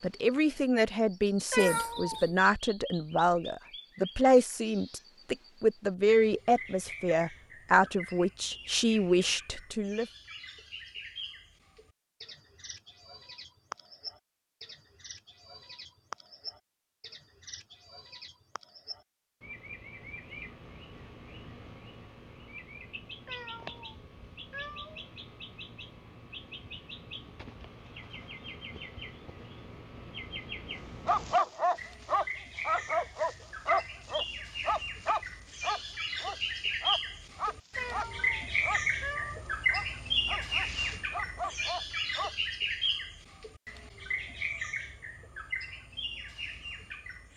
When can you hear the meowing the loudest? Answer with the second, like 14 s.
2 s.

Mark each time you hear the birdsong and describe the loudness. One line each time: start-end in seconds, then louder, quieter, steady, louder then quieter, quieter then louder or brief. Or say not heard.
0.0-47.3 louder.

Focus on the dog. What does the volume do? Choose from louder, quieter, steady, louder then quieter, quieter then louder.
quieter.